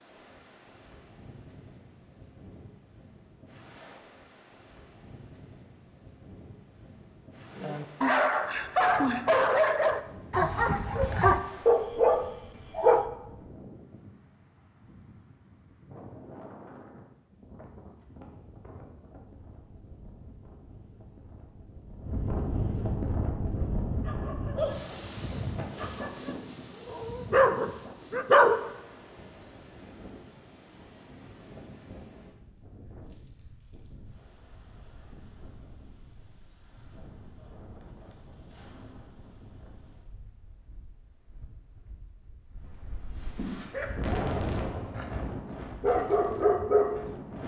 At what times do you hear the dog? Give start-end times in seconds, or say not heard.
7.6-13.1, 23.6-28.6, 43.5-47.1.